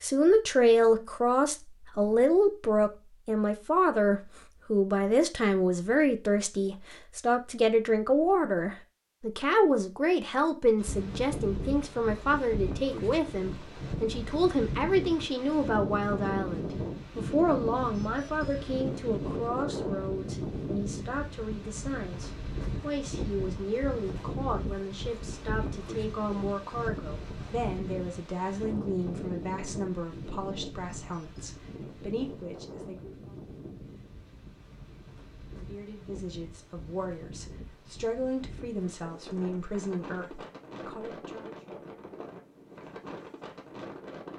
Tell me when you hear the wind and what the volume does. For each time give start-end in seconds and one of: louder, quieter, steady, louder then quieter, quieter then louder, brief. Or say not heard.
10.8-44.3 quieter.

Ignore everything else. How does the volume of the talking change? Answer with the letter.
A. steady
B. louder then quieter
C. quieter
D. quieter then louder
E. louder
C.